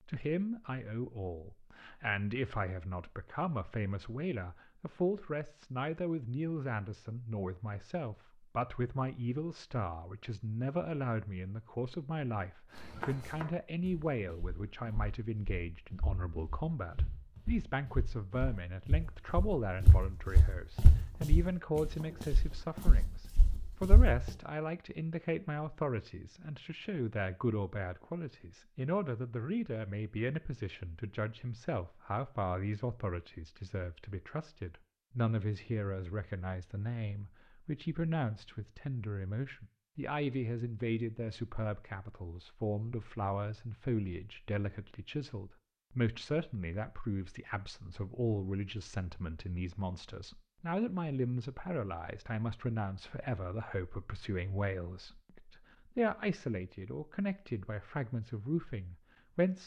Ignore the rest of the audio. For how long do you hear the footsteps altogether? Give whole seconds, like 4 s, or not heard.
11 s.